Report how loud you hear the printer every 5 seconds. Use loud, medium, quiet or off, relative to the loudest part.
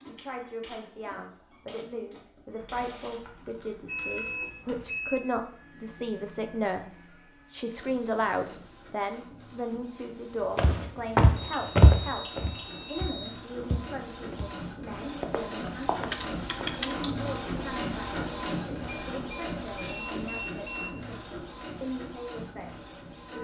quiet, quiet, medium, loud, medium.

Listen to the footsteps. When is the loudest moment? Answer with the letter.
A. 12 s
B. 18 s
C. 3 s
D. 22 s
A.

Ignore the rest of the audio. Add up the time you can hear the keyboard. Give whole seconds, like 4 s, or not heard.
4 s.